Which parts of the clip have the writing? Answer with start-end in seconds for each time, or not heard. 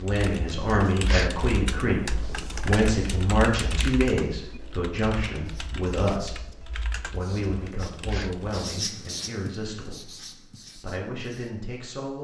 5.3-11.8.